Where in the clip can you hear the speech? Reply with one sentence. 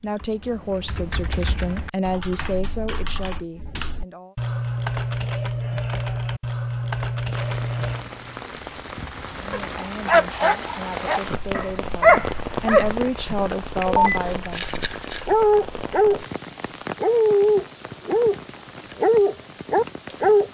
The speech can be heard from 0.0 to 4.3 s and from 9.4 to 14.7 s.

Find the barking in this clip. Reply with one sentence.
You can hear the barking from 9.5 to 16.2 s, from 17.0 to 18.4 s and from 18.9 to 20.4 s.